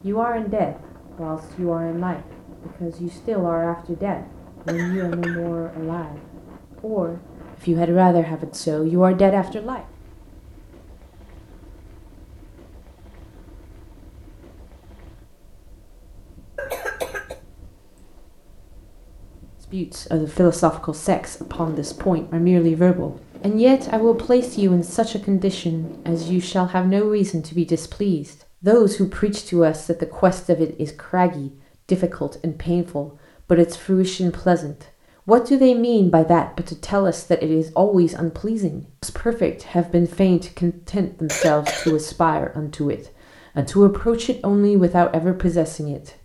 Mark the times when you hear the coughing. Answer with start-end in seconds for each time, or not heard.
4.7-5.5, 16.6-17.4, 41.2-42.0.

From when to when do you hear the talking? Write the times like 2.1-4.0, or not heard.
0.0-6.2, 6.8-9.8, 19.7-46.1.